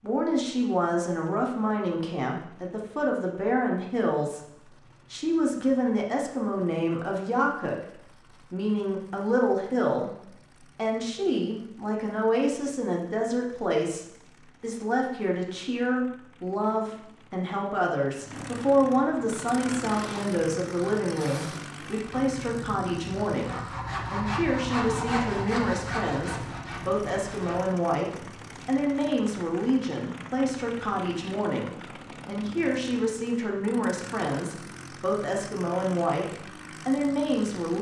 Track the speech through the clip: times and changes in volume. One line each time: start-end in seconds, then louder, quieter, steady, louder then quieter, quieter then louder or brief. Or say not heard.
0.0-37.7 steady.